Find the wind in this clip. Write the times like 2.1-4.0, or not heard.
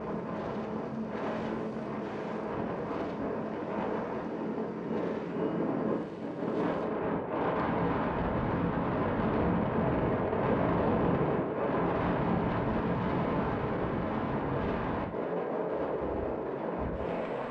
0.0-17.4.